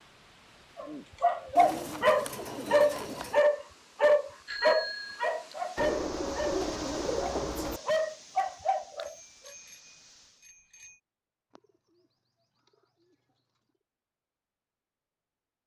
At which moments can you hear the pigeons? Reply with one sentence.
You can hear the pigeons from 1.6 to 3.5 s, from 5.8 to 7.8 s and from 11.5 to 13.2 s.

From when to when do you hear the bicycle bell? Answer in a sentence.
The bicycle bell can be heard from 4.5 to 5.3 s and from 9.1 to 11.0 s.